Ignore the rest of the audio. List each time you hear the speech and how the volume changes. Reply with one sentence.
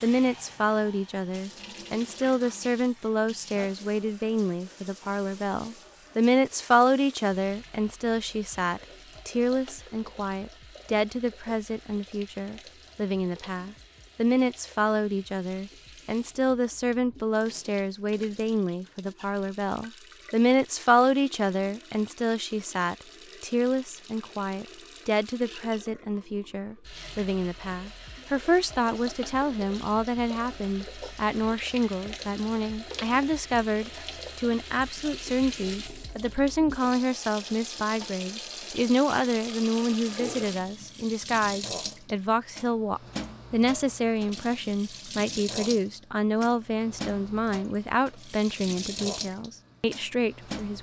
The speech can be heard from 0.0 to 50.7 s, at a steady volume.